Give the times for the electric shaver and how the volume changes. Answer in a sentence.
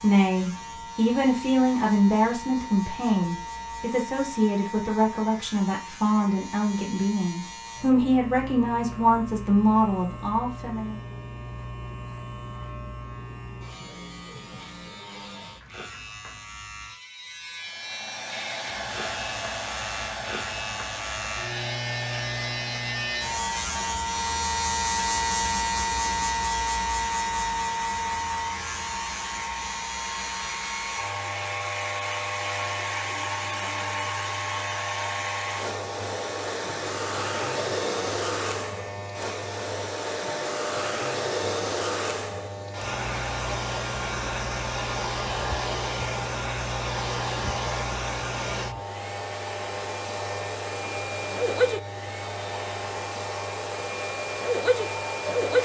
The electric shaver can be heard from 0.0 to 55.6 s, getting louder then quieter.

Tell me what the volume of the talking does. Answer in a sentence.
The volume of the talking stays about the same.